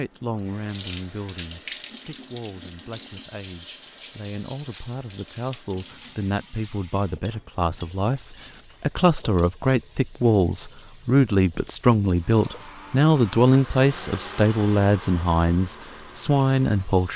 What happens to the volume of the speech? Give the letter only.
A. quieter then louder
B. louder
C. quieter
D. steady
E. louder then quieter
B.